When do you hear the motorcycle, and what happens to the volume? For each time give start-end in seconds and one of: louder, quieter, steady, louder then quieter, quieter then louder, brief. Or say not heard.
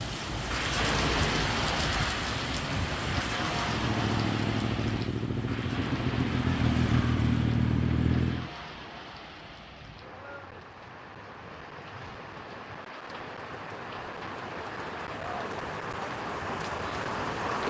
0.0-8.5 louder.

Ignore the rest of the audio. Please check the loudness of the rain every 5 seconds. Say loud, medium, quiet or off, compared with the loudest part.
loud, medium, medium, loud.